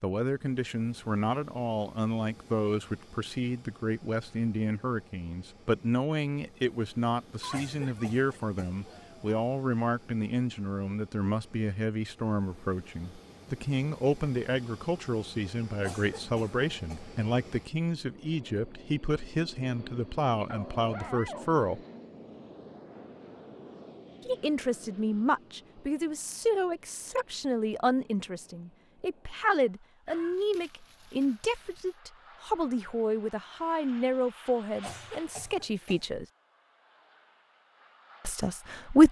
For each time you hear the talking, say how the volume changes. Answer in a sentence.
You can hear the talking from 0.0 to 21.8 s, at a steady volume; from 24.2 to 36.2 s, at a steady volume; and briefly from 38.2 to 39.0 s.